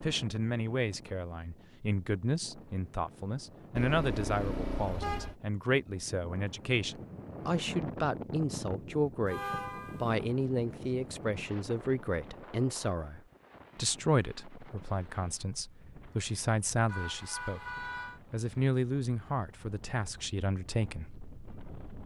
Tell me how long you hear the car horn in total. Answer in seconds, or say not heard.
4 s.